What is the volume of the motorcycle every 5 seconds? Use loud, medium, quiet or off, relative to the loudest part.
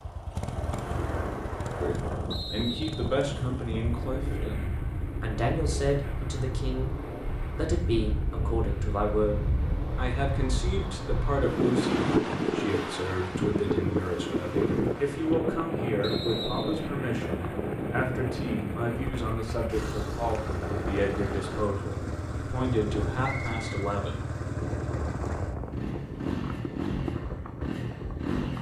medium, medium, medium, medium, loud, loud.